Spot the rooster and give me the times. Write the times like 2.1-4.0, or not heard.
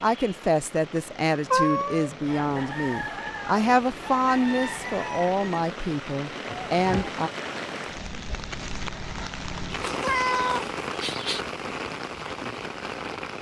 2.2-5.6.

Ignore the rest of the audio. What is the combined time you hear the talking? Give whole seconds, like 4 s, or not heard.
7 s.